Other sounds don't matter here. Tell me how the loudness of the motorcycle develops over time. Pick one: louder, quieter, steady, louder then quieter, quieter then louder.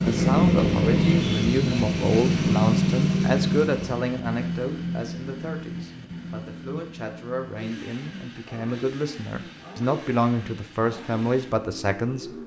quieter.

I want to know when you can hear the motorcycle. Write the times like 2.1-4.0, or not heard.
0.0-12.4.